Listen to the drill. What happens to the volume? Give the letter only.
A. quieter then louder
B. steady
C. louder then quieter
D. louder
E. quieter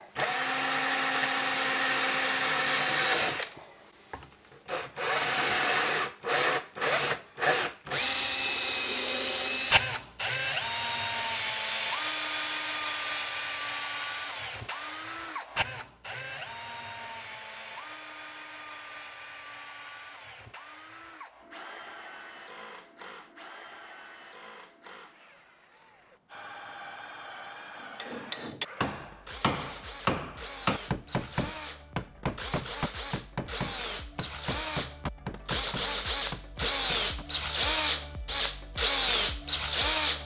A.